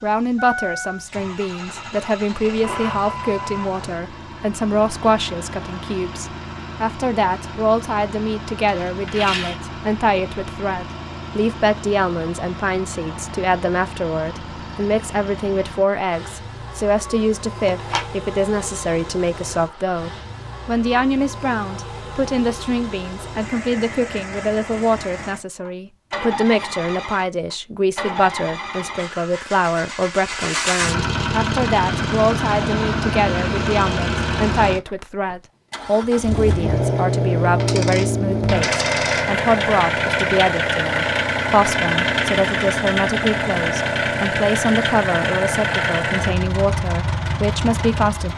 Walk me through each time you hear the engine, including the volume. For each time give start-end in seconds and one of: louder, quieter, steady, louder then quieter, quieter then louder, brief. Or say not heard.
0.0-48.3 louder.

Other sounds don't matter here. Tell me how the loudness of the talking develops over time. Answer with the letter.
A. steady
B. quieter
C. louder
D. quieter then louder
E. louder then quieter
A.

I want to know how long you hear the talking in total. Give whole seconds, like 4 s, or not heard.
48 s.